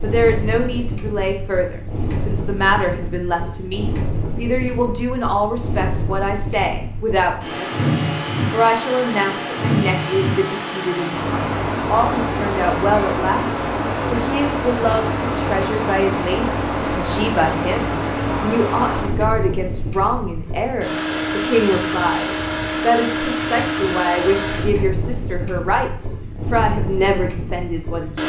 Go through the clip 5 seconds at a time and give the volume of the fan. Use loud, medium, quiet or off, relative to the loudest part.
medium, loud, loud, loud, loud, medium.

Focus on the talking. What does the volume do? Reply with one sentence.
The volume of the talking stays about the same.